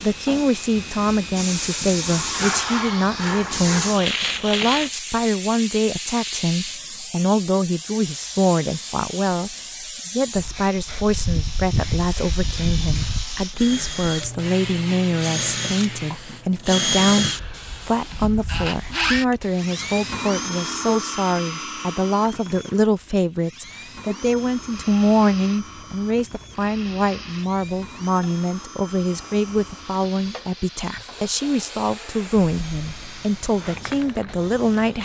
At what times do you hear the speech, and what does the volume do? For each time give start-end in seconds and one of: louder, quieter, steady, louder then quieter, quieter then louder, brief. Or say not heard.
0.0-35.0 steady.